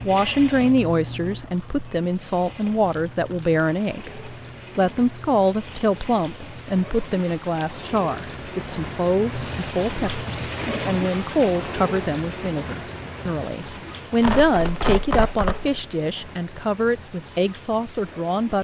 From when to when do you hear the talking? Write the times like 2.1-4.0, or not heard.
0.0-18.5.